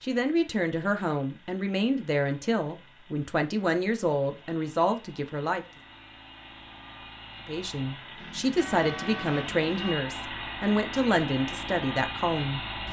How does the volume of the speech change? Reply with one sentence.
The volume of the speech stays about the same.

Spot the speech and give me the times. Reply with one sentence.
You can hear the speech from 0.0 to 5.7 s and from 7.5 to 12.6 s.